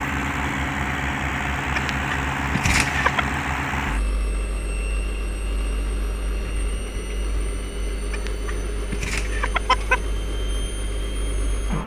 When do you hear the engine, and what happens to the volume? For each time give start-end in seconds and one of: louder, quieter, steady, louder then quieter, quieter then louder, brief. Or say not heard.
0.0-11.8 quieter.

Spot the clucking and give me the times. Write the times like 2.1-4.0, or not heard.
1.8-3.2, 8.1-10.1.